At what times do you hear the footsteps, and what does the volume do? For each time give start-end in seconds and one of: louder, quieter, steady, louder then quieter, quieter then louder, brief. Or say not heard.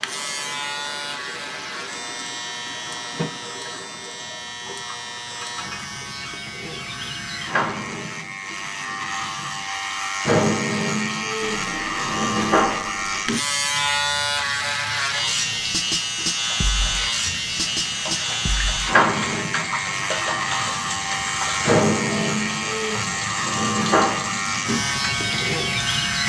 not heard.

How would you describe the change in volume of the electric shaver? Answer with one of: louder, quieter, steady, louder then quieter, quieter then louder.
louder.